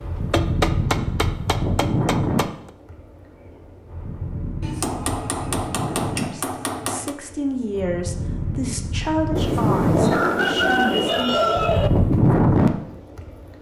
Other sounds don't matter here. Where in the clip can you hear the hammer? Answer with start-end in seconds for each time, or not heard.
0.3-2.5, 4.6-7.2, 9.3-11.2.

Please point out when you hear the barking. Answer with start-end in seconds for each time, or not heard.
not heard.